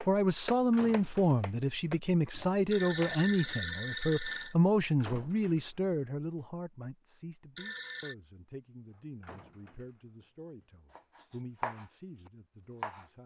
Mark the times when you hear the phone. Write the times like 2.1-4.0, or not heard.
2.7-4.5, 7.5-8.2.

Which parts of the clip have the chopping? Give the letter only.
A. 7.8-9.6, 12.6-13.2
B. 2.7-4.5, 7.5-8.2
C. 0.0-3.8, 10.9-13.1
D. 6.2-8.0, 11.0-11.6
C.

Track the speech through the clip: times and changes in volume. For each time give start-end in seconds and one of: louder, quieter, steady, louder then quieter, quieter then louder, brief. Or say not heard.
0.0-13.2 quieter.